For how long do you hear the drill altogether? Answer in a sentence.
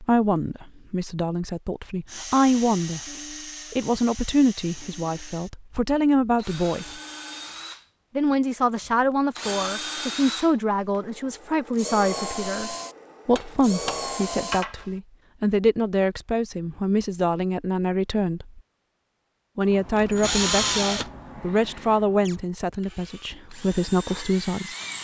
You can hear the drill for 18 seconds altogether.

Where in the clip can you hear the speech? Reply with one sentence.
The speech can be heard from 0.0 to 3.0 s, from 3.7 to 6.9 s, from 8.2 to 18.6 s and from 19.6 to 24.8 s.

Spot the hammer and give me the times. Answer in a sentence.
You can hear the hammer from 13.3 to 14.9 s.